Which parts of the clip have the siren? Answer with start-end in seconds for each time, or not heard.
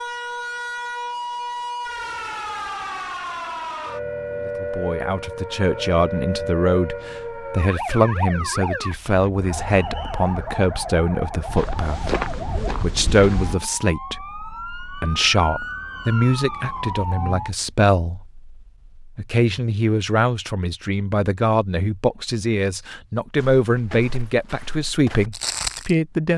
0.0-17.5.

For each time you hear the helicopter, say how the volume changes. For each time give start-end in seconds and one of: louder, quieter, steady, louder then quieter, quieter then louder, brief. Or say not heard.
not heard.